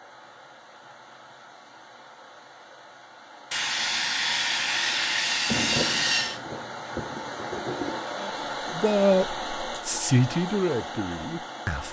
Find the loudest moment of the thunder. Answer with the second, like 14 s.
6 s.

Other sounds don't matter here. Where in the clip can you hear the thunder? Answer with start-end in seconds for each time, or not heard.
5.5-8.2.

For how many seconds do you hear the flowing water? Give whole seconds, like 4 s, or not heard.
12 s.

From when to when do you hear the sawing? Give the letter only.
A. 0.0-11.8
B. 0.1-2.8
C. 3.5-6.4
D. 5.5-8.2
C.